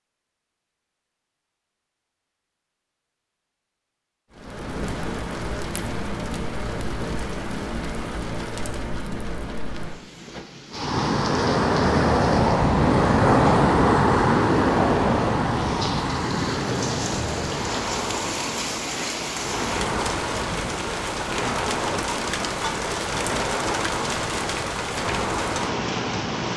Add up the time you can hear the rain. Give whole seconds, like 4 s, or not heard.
22 s.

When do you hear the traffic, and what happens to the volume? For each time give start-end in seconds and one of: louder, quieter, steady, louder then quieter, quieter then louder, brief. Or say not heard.
10.7-26.5 quieter.